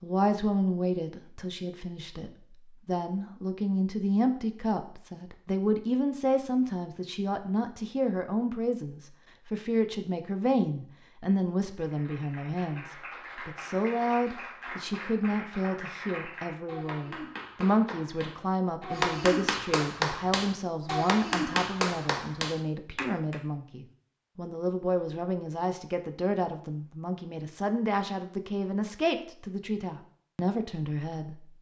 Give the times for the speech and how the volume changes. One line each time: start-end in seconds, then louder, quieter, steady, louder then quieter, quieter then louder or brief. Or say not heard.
0.0-31.4 steady.